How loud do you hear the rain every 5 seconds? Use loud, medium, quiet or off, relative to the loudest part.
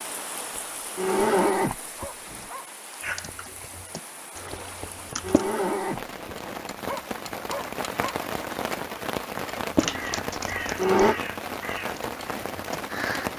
medium, loud, loud.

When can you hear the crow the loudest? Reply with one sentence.
The volume of the crow peaks at 10 seconds.